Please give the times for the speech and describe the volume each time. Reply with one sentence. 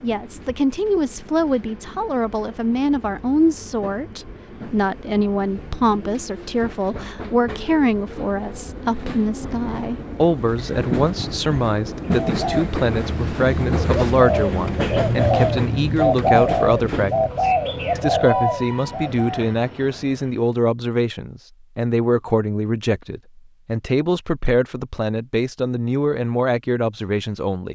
The speech can be heard from 0.0 to 27.7 s, at a steady volume.